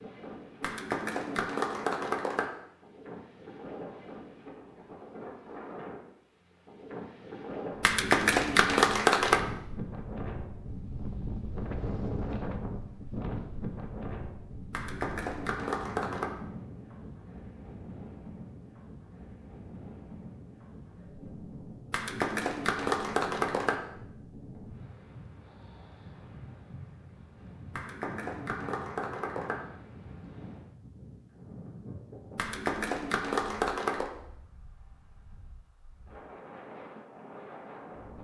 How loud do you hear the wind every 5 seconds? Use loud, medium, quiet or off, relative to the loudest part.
medium, loud, loud, medium, medium, medium, medium, medium.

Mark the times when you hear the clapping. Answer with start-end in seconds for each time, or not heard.
0.6-2.5, 7.8-9.4, 14.7-16.3, 21.9-23.8, 27.7-29.6, 32.4-34.1.